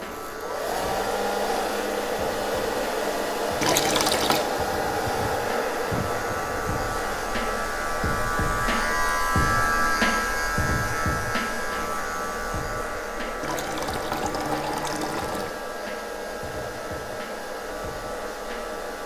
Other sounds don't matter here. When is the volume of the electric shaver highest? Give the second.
10 s.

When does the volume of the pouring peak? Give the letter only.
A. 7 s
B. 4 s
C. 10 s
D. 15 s
B.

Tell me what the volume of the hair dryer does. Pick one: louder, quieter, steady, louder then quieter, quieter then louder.
quieter.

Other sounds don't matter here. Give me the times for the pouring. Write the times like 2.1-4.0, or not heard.
3.6-4.5, 13.4-15.5.